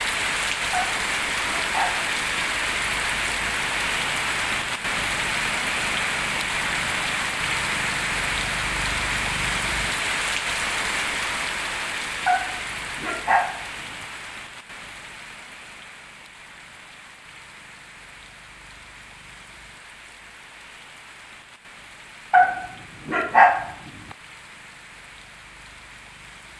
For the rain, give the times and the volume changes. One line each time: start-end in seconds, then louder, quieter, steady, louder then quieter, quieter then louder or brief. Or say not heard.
0.0-26.5 quieter.